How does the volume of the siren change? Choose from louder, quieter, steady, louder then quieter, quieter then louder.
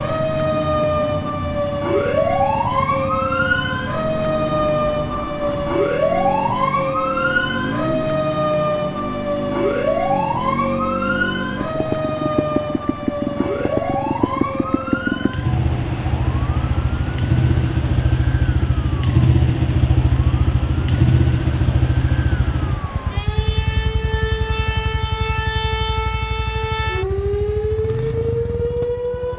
quieter then louder.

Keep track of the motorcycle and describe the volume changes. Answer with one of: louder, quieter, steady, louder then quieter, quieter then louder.
louder then quieter.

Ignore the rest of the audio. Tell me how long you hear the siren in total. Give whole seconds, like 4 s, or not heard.
29 s.